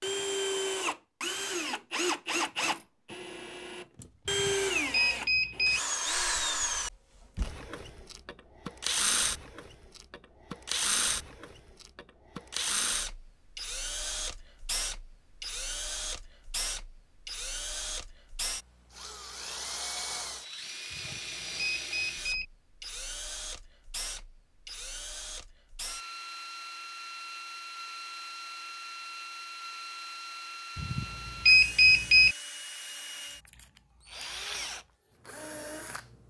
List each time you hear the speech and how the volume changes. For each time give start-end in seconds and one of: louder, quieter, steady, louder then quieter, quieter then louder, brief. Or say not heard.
not heard.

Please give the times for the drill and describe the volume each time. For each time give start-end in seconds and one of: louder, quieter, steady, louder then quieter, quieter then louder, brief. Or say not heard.
0.0-36.2 quieter.